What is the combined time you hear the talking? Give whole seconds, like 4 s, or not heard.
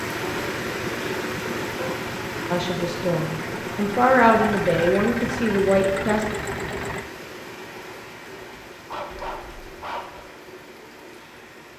4 s.